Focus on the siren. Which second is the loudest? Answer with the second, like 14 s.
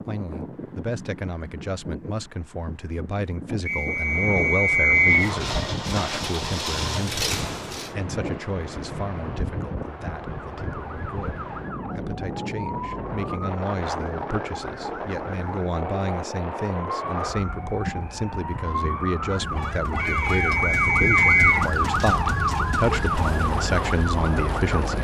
22 s.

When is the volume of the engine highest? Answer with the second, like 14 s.
7 s.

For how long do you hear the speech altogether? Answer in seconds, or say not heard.
25 s.